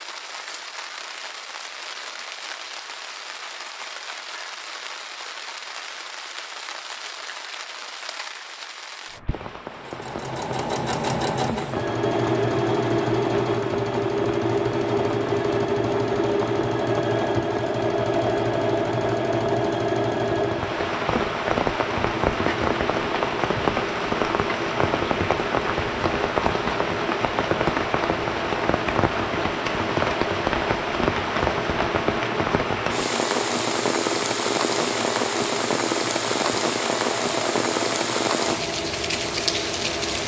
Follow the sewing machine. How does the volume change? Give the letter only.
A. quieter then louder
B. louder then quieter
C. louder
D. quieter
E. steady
D.